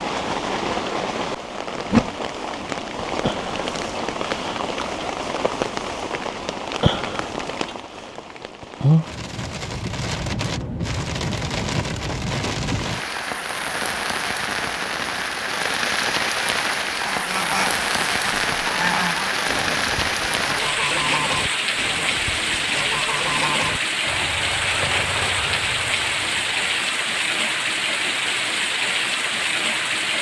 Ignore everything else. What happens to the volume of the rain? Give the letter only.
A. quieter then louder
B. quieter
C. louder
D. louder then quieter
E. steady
E.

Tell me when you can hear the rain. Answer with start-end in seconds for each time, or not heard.
0.0-30.1.